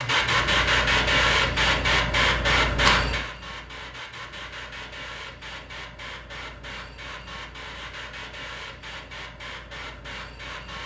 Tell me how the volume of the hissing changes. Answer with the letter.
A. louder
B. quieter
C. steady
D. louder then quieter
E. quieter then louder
B.